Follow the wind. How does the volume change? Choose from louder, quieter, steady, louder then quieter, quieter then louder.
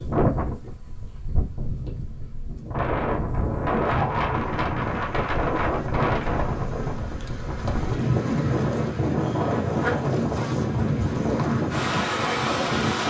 louder.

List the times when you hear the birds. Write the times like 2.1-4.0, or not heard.
not heard.